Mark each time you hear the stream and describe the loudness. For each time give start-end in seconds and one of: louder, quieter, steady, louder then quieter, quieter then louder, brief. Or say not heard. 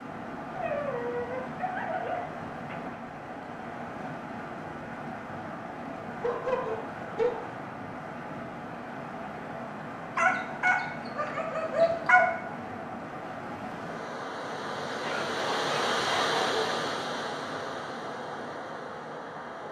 0.0-19.6 louder.